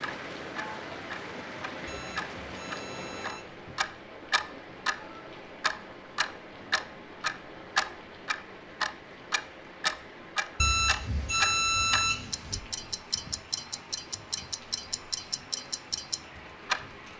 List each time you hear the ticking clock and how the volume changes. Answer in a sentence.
The ticking clock can be heard from 0.0 to 17.1 s, getting louder then quieter.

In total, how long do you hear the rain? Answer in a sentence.
The rain can be heard for 17 seconds in total.